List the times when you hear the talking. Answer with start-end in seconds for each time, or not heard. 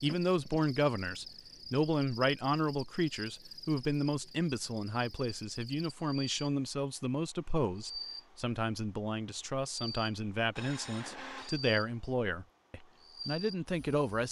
0.0-14.2.